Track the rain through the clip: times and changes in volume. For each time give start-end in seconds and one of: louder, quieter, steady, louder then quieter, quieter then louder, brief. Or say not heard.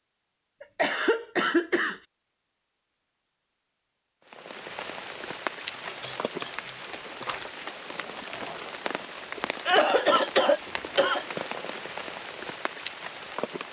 4.2-13.6 steady.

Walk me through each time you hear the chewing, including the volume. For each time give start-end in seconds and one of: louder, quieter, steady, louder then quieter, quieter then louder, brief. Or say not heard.
not heard.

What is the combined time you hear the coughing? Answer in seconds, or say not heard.
5 s.